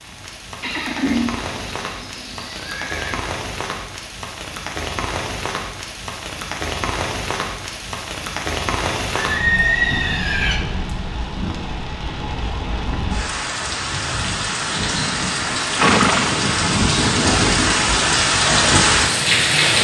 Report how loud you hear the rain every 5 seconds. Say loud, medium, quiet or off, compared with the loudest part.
quiet, medium, medium, loud.